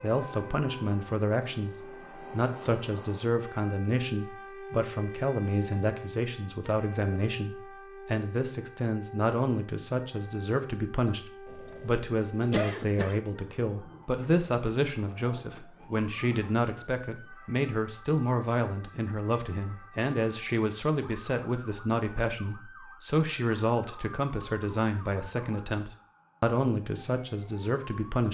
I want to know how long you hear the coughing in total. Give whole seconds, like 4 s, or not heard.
2 s.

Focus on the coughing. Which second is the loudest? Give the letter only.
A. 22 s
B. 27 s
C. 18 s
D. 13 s
D.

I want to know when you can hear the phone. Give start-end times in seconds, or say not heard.
not heard.